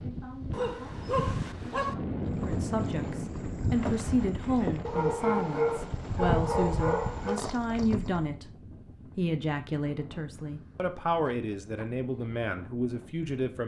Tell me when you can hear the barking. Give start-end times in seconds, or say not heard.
0.5-1.9, 4.8-7.4, 10.3-11.8.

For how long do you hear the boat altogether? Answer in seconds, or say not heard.
6 s.